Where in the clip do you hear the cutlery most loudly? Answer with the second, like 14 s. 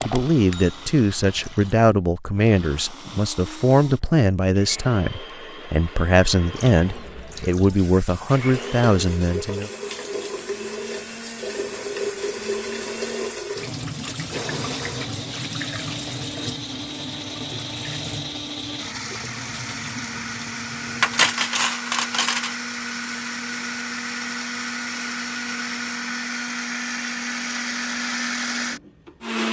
21 s.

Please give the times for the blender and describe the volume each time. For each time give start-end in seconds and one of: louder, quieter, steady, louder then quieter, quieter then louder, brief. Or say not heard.
0.0-29.4 louder.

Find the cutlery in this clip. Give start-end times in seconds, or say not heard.
21.0-22.6.